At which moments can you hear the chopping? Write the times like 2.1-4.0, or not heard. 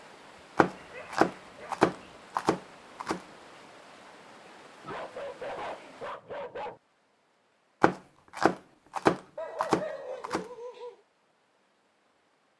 0.6-3.2, 7.8-10.4.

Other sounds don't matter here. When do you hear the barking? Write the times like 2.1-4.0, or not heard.
0.7-2.1, 4.8-6.8, 9.3-10.9.